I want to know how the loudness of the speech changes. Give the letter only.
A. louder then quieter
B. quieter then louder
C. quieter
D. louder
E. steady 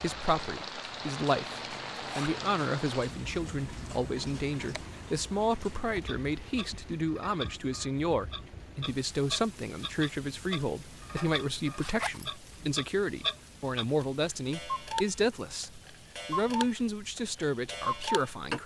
E.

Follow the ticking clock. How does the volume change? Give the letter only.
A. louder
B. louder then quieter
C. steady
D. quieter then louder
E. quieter
A.